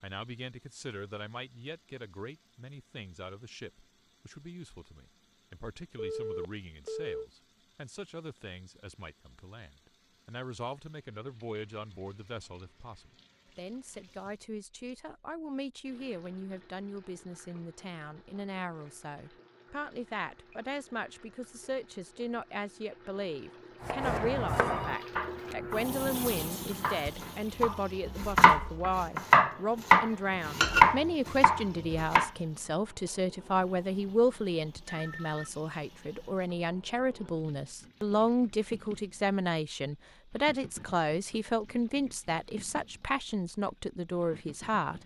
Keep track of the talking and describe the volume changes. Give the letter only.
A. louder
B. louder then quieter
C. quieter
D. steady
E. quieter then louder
A.